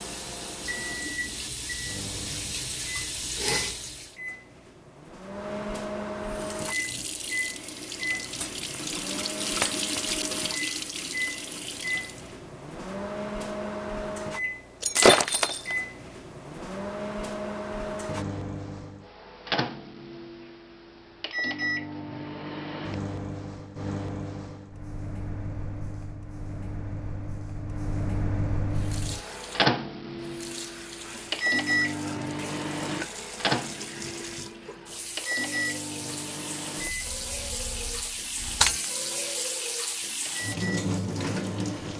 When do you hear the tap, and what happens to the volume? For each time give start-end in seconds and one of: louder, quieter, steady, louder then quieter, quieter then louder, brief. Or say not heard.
0.0-4.2 louder
6.2-12.3 louder then quieter
28.6-41.9 louder.